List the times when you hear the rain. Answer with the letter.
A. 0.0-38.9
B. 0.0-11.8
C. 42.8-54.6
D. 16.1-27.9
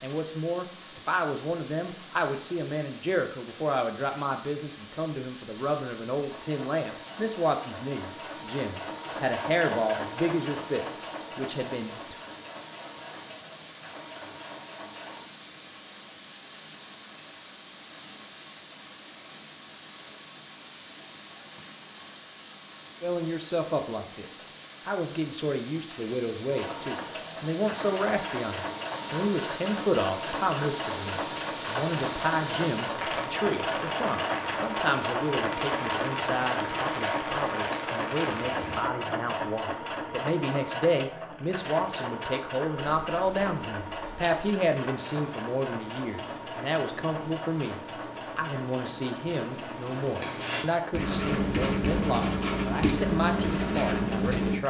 A.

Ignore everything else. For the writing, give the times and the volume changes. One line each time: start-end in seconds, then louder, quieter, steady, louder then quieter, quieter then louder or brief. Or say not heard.
42.8-54.6 louder.